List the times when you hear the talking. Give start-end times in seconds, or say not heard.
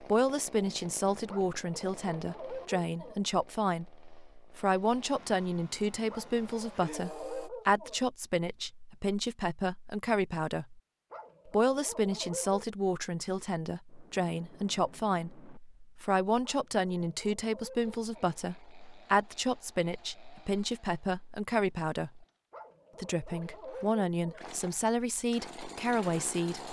0.0-10.8, 11.4-22.2, 23.0-26.6.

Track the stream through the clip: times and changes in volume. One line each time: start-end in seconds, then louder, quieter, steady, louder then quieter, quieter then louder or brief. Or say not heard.
not heard.